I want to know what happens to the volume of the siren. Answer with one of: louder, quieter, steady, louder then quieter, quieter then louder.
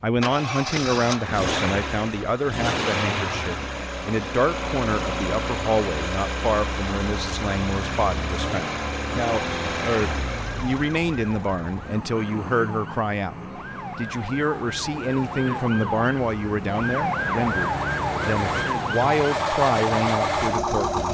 louder.